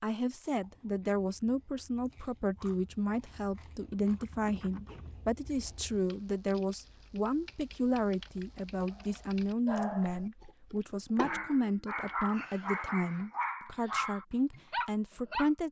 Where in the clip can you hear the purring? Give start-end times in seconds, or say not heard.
not heard.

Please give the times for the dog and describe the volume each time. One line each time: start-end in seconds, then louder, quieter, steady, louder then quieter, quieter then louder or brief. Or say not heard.
8.9-10.4 brief
11.2-15.5 steady.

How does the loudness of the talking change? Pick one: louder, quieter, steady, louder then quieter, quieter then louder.
steady.